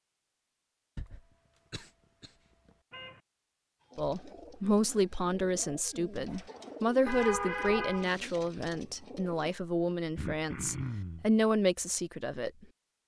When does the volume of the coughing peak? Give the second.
11 s.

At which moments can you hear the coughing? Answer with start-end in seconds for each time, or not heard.
0.9-2.7, 6.2-6.9, 10.2-11.3.